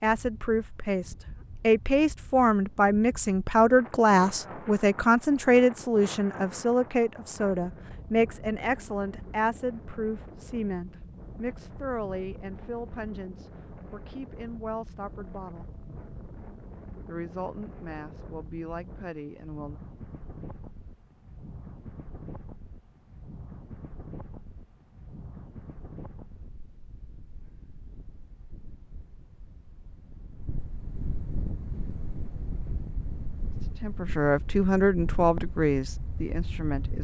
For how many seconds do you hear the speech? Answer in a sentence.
The speech can be heard for 22 seconds in total.